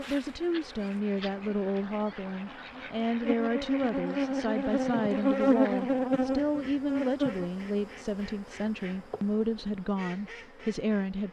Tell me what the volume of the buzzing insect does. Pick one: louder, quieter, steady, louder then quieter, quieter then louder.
louder then quieter.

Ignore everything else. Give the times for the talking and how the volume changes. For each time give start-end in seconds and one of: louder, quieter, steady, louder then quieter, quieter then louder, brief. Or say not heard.
0.1-11.2 steady.